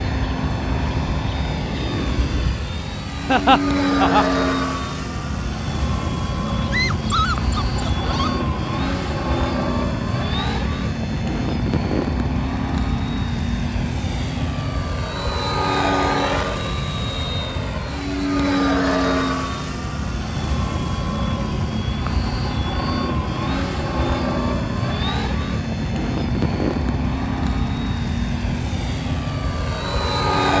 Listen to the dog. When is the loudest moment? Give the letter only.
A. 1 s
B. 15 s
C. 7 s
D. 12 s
C.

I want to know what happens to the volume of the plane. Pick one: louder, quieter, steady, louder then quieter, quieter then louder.
steady.